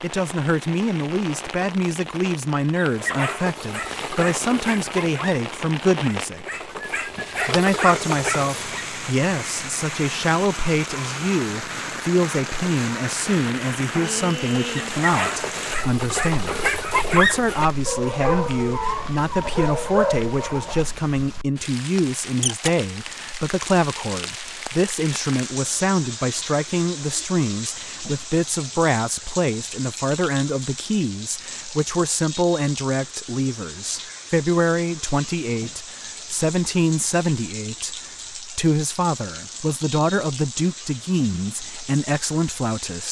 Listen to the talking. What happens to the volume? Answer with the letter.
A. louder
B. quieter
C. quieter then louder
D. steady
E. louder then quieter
D.